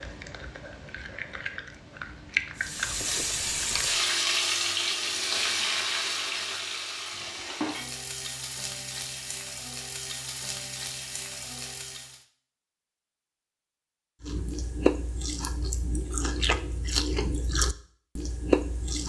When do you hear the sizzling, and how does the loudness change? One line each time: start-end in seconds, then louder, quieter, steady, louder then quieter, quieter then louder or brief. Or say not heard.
2.5-12.2 quieter.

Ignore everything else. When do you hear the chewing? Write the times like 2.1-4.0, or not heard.
0.0-4.0, 14.2-19.0.